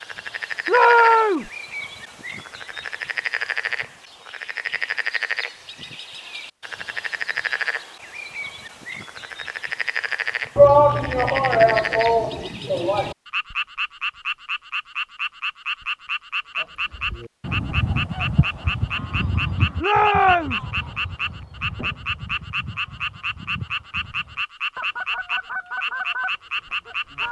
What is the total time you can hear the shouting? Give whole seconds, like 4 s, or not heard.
4 s.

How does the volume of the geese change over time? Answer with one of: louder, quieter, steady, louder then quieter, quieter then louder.
quieter then louder.